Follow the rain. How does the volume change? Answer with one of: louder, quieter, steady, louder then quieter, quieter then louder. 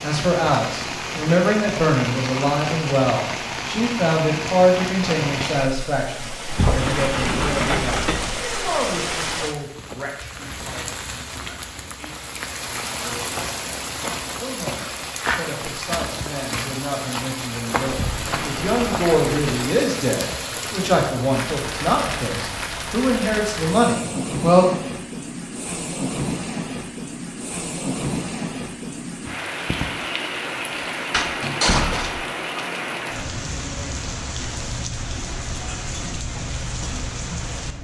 steady.